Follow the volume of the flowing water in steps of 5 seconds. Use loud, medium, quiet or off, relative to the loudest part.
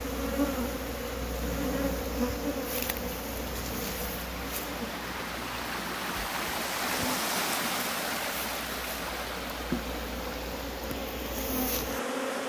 medium, loud, medium.